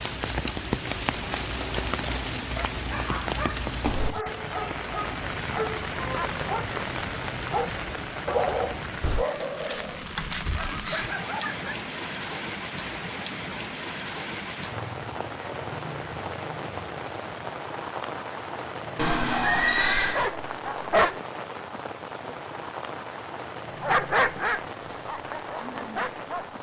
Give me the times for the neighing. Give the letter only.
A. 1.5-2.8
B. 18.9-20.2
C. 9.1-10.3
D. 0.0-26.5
B.